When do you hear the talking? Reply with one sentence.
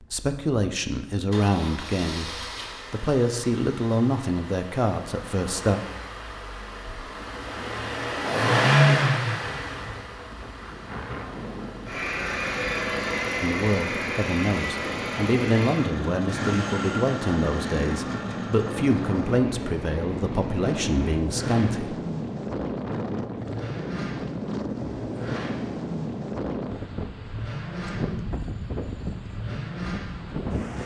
The talking can be heard from 0.0 to 5.8 s and from 13.4 to 21.9 s.